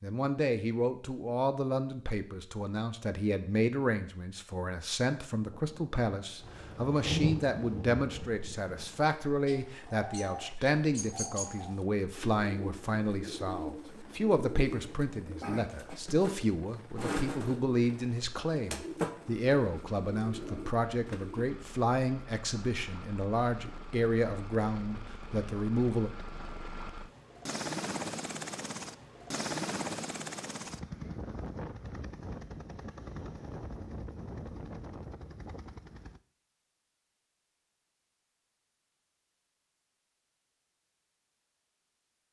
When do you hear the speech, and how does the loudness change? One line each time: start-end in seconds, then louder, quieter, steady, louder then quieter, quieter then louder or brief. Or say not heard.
0.0-26.1 steady.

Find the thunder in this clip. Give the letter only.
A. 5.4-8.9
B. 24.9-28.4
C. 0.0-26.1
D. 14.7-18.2
A.